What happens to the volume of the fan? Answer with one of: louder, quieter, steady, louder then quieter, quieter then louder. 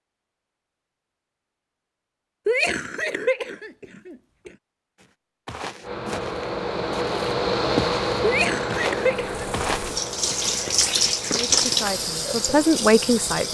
quieter.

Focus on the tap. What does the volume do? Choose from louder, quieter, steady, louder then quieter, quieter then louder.
louder then quieter.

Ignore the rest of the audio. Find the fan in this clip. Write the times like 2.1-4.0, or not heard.
5.8-13.4.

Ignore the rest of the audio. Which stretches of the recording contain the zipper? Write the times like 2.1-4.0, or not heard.
not heard.